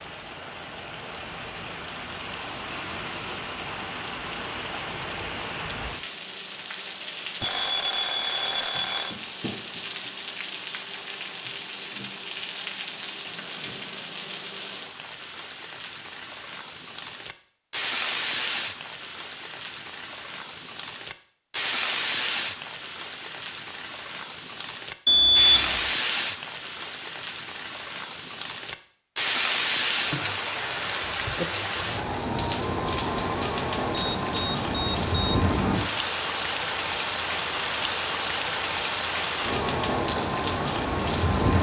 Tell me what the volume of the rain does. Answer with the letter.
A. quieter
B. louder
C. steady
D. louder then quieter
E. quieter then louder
B.